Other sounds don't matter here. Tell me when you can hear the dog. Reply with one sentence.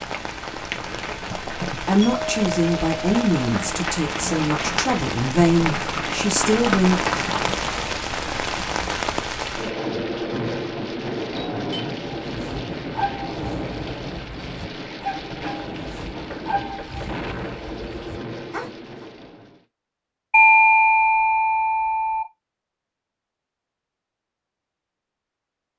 The dog can be heard from 12.2 to 19.1 s.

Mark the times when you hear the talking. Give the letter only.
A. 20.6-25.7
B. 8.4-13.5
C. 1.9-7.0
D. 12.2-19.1
C.